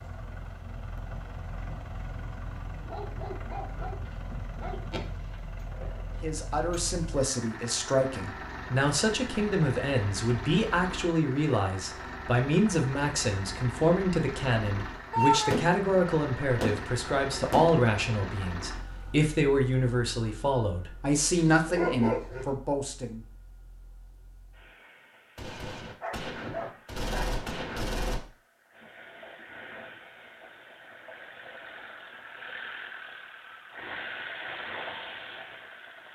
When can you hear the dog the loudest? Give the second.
22 s.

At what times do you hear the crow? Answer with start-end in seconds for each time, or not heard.
not heard.